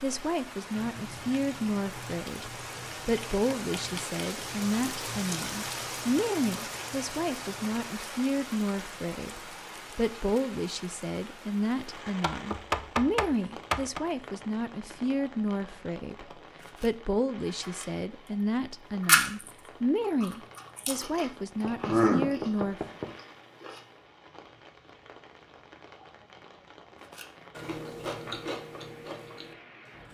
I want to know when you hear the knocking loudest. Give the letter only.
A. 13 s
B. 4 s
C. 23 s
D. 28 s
A.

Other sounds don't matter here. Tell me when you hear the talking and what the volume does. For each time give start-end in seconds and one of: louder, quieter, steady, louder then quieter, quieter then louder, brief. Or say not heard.
0.0-22.9 steady.